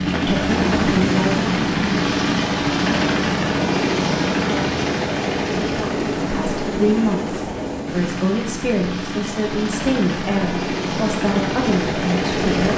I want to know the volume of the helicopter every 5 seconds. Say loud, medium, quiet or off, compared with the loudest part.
loud, medium, loud.